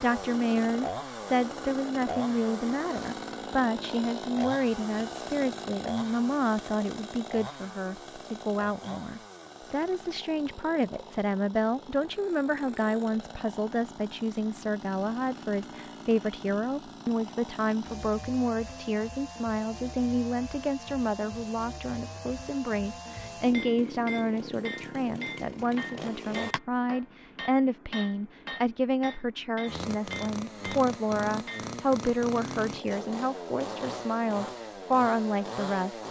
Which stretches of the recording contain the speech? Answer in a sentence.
The speech can be heard from 0.0 to 36.0 s.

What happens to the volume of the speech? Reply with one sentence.
The loudness of the speech stays about the same.